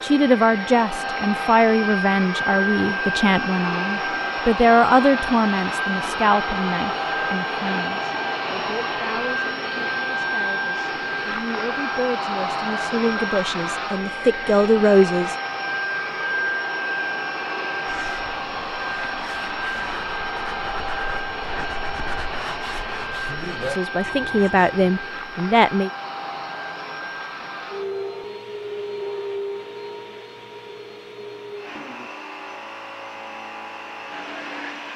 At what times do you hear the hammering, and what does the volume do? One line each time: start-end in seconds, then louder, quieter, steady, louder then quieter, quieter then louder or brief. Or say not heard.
not heard.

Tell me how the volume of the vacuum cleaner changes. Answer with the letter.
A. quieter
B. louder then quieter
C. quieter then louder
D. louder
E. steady
A.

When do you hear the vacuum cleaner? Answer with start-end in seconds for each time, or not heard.
0.0-34.9.